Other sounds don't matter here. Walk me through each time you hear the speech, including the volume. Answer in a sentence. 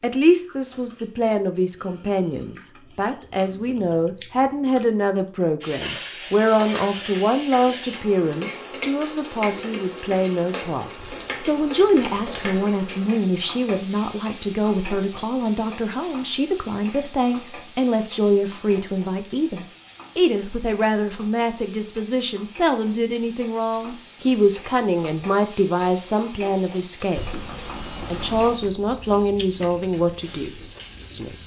You can hear the speech from 0.0 to 31.4 s, at a steady volume.